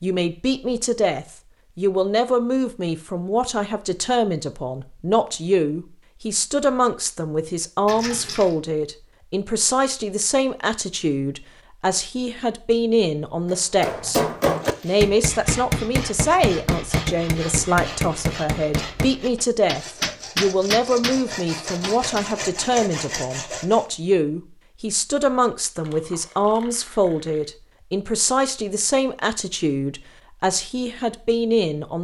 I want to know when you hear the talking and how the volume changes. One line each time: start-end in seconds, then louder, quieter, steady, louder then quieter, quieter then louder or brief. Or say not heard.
0.0-31.9 steady.